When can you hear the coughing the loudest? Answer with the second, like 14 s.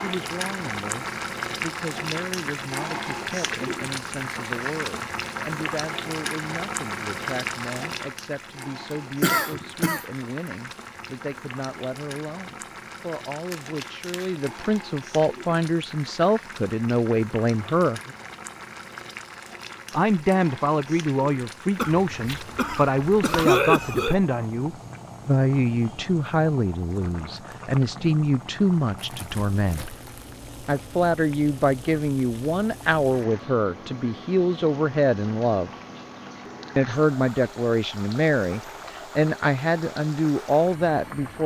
24 s.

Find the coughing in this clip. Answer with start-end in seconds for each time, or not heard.
9.2-10.1, 21.8-24.1.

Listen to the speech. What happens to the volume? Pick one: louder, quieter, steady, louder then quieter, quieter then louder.
louder.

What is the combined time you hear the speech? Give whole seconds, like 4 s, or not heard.
38 s.